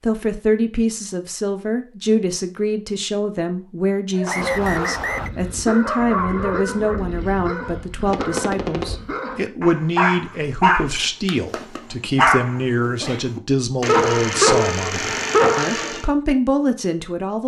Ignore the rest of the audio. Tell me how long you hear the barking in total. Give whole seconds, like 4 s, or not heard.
12 s.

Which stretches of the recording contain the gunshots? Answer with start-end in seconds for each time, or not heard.
8.1-8.9.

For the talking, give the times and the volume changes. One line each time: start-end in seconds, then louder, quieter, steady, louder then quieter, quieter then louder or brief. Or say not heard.
0.0-17.4 steady.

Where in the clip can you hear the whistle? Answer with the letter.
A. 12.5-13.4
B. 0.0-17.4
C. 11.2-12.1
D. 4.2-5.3
D.